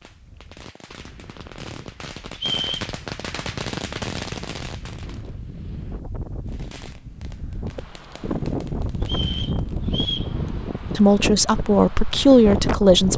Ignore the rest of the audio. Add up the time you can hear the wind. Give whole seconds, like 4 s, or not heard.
13 s.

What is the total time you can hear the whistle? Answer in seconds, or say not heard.
2 s.